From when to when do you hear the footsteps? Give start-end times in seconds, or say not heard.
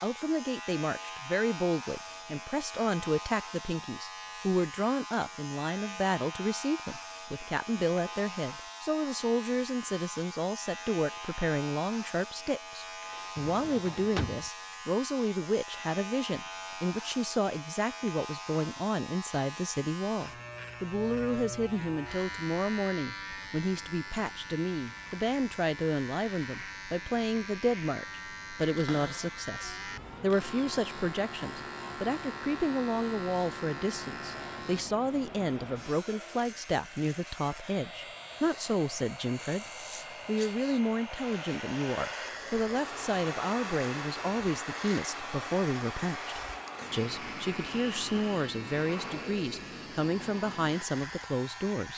not heard.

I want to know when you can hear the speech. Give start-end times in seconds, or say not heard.
0.0-39.6, 40.2-51.9.